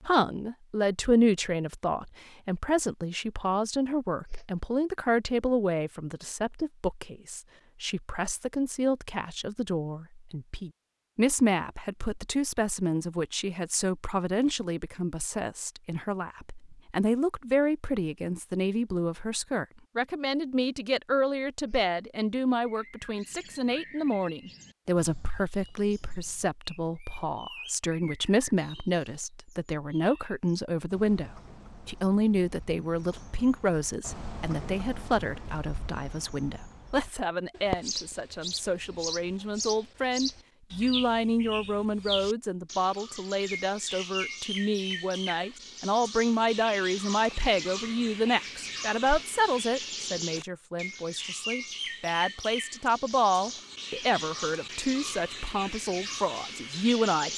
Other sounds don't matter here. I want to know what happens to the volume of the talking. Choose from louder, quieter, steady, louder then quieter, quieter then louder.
steady.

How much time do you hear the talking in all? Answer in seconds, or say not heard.
57 s.